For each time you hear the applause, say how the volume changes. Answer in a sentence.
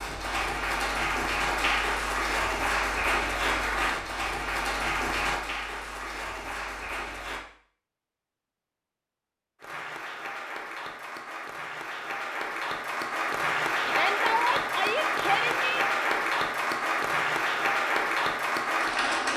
The applause can be heard from 0.0 to 7.5 s, getting quieter; and from 9.6 to 19.3 s, getting louder.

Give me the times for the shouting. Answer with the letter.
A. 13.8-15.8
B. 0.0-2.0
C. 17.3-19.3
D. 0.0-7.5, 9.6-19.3
A.